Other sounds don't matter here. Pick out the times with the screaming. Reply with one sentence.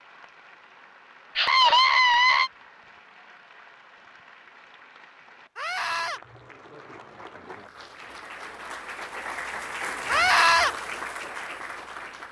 You can hear the screaming from 1.4 to 2.5 s, from 5.5 to 6.2 s and from 10.1 to 10.8 s.